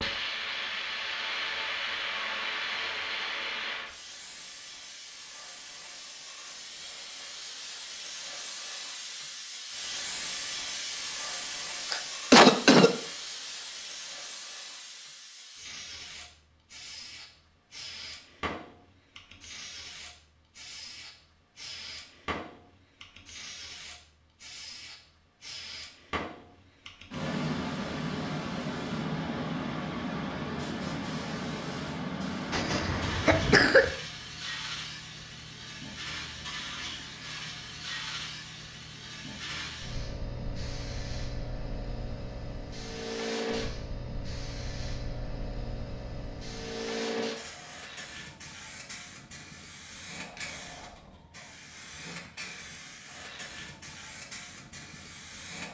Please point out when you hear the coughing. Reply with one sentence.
The coughing can be heard from 11.9 to 12.9 s and from 32.5 to 33.9 s.